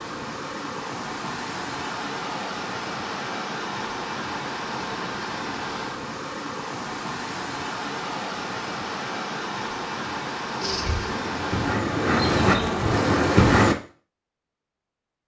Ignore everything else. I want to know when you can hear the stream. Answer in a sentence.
The stream can be heard from 0.0 to 11.8 s.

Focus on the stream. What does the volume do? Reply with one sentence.
The loudness of the stream stays about the same.